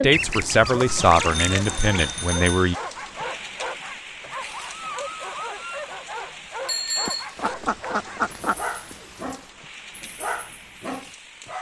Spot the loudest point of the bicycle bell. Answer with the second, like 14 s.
7 s.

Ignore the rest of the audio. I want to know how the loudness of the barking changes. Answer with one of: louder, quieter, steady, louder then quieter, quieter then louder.
steady.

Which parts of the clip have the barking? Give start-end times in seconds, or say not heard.
0.7-11.5.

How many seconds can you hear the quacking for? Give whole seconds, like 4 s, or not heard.
4 s.